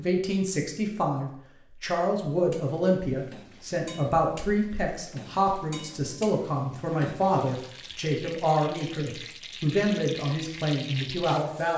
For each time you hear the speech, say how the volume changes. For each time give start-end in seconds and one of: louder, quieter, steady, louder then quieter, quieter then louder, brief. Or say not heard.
0.0-11.7 steady.